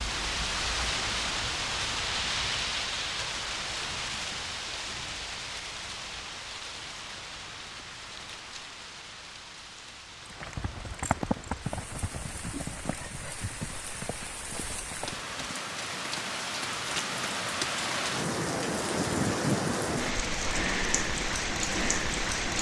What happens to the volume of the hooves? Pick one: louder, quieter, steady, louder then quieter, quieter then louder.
quieter then louder.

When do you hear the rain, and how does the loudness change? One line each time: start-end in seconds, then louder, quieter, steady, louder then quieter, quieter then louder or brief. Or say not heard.
0.0-22.5 quieter then louder.